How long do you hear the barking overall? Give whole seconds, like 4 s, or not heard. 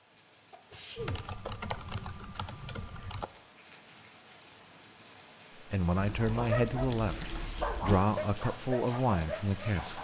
4 s.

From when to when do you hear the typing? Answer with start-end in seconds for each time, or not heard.
0.9-3.3, 6.0-8.0.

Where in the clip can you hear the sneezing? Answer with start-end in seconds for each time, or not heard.
0.5-1.2, 7.2-7.9.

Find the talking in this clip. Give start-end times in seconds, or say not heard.
5.6-10.0.